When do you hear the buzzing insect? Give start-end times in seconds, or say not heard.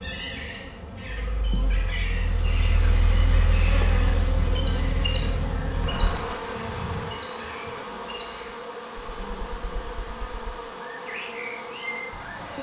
0.0-12.5.